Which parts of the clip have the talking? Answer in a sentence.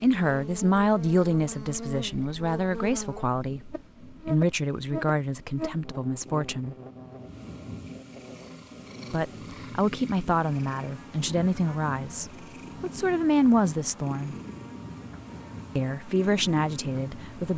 You can hear the talking from 0.0 to 6.8 s, from 9.1 to 14.3 s and from 15.8 to 17.5 s.